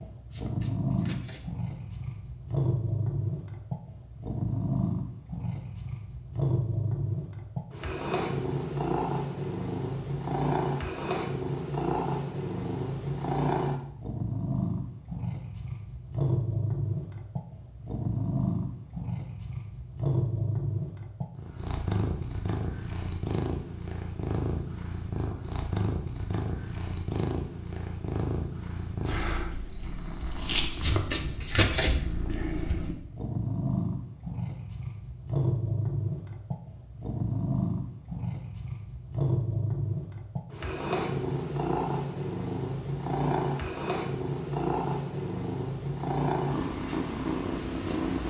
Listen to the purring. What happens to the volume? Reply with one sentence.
The volume of the purring stays about the same.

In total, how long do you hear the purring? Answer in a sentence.
You can hear the purring for 48 seconds altogether.